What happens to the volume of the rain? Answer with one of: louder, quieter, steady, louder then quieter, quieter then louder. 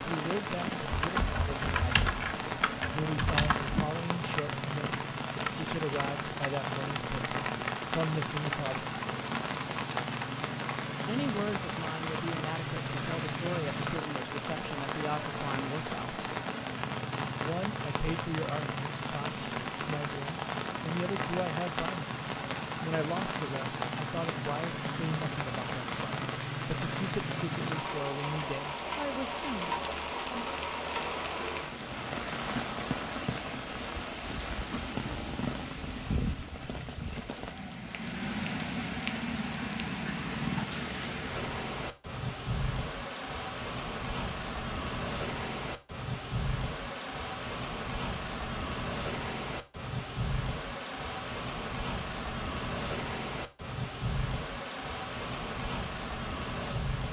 steady.